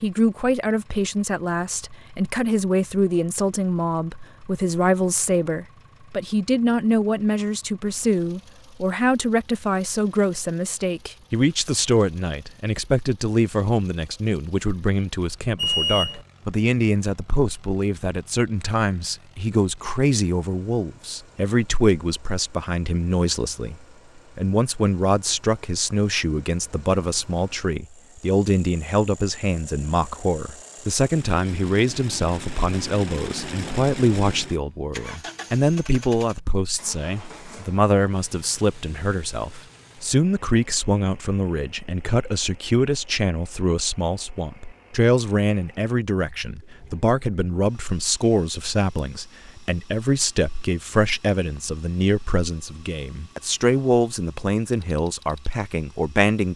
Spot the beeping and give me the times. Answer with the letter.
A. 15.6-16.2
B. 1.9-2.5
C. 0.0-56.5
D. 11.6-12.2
A.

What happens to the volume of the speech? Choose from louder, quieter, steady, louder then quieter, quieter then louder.
steady.